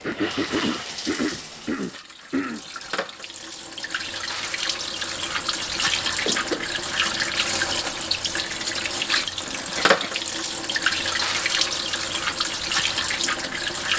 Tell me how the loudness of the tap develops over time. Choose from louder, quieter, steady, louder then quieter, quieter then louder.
louder.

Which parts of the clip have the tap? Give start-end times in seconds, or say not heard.
0.0-13.9.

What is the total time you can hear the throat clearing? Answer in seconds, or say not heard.
4 s.